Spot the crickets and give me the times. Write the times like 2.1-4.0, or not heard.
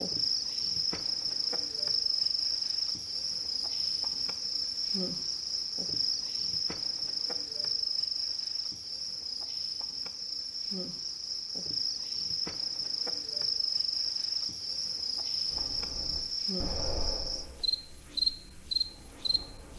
0.0-19.7.